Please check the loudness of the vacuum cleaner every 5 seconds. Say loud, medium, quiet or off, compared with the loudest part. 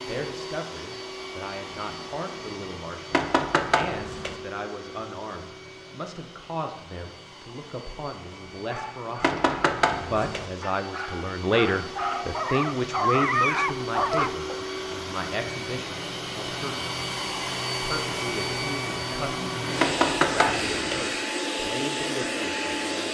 medium, quiet, medium, loud, loud.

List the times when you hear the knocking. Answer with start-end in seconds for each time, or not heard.
3.1-4.3, 9.2-10.4, 19.8-21.1.